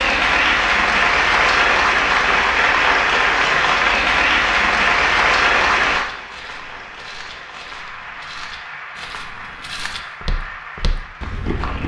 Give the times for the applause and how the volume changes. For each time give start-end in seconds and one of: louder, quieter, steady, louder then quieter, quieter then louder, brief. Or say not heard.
0.0-11.8 quieter.